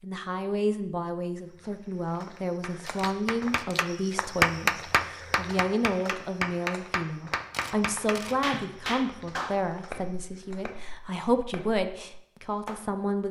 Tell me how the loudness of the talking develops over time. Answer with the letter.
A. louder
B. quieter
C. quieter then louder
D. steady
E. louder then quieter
D.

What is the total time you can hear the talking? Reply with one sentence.
The talking can be heard for 13 seconds in total.